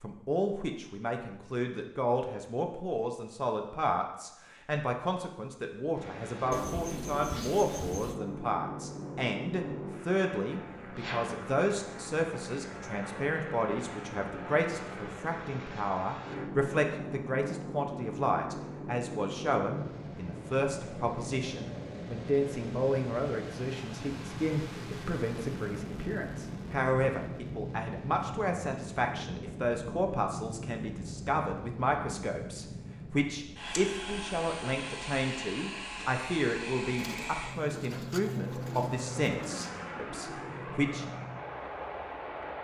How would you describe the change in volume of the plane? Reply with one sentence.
The loudness of the plane stays about the same.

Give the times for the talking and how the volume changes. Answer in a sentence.
You can hear the talking from 0.0 to 41.0 s, at a steady volume.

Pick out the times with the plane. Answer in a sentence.
The plane can be heard from 6.0 to 42.6 s.